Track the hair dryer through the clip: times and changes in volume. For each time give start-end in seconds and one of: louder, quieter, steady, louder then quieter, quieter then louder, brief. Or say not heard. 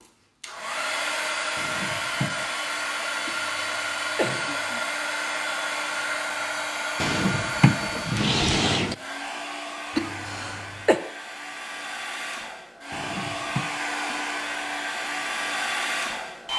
0.0-16.5 quieter then louder.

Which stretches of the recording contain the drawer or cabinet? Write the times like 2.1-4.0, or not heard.
1.6-2.5, 7.0-8.9, 12.9-13.7.